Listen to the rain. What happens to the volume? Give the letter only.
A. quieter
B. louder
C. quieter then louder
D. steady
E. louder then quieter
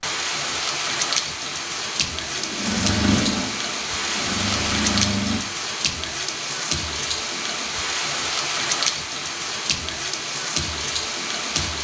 D.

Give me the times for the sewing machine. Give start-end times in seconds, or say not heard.
2.3-5.4.